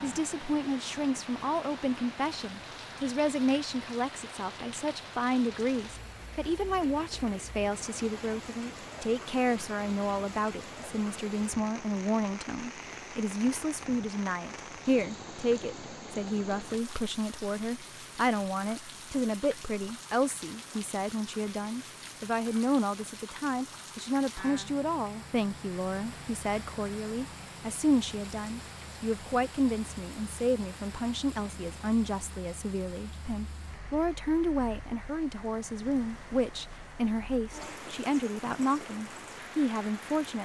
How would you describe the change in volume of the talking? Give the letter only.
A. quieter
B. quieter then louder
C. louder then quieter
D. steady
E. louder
D.